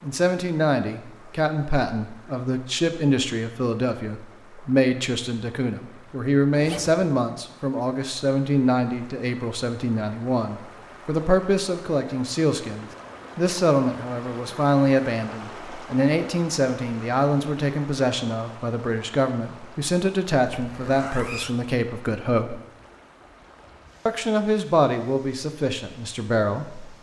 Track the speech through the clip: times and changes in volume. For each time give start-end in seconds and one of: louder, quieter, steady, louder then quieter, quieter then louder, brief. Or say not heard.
0.0-22.6 steady
24.1-26.9 brief.